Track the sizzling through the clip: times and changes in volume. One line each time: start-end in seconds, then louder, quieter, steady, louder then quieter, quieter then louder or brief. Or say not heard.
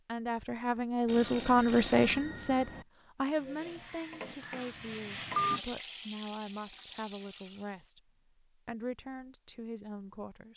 3.2-7.8 louder then quieter.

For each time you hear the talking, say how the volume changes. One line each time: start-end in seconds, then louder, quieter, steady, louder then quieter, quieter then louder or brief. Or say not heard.
0.1-10.5 quieter.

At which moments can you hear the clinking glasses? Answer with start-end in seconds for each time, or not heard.
not heard.